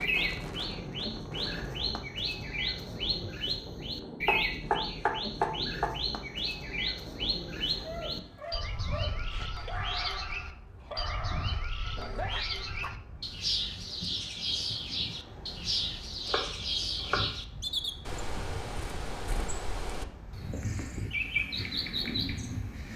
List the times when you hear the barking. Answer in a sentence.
You can hear the barking from 7.8 to 12.9 s.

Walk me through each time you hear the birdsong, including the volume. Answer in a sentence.
You can hear the birdsong from 0.0 to 22.9 s, at a steady volume.